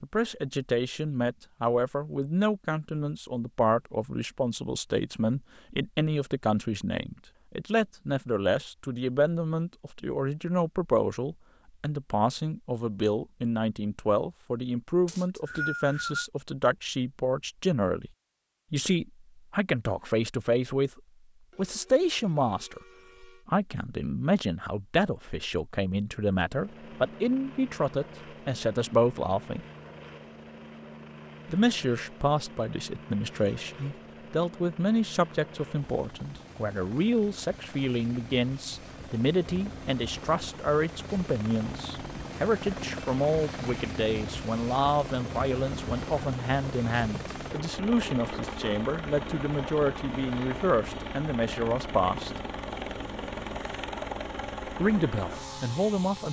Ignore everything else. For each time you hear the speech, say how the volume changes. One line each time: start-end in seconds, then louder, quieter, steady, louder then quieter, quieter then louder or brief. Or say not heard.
0.0-18.1 steady
18.7-29.6 steady
31.4-52.4 steady
54.7-56.2 brief.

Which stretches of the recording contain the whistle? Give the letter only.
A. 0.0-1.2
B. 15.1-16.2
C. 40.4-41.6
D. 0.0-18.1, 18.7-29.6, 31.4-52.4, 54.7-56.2
B.